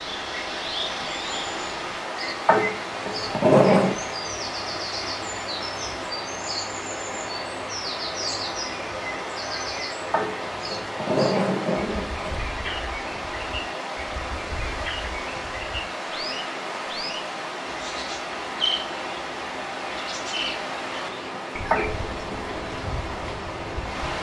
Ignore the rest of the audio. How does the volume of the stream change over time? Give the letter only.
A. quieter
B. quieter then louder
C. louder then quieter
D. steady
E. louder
D.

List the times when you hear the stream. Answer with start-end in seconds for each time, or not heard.
0.0-24.1.